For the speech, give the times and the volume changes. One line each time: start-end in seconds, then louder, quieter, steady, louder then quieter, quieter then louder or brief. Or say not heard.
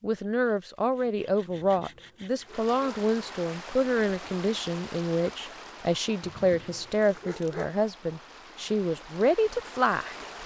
0.0-10.2 steady.